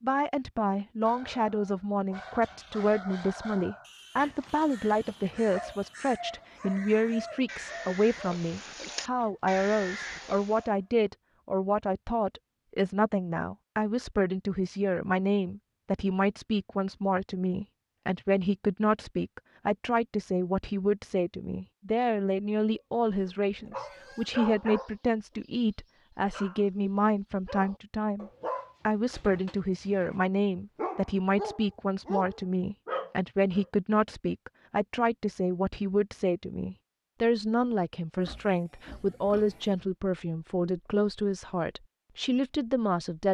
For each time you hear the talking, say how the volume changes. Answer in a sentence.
The talking can be heard from 0.0 to 43.2 s, at a steady volume.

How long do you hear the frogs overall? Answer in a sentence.
The frogs can't be heard in this clip.